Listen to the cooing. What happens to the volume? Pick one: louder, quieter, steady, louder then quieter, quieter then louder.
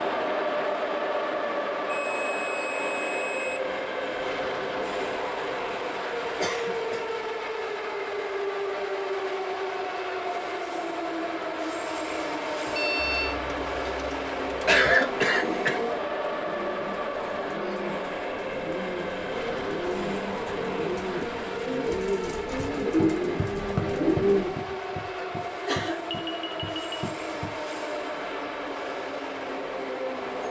louder.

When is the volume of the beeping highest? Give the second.
13 s.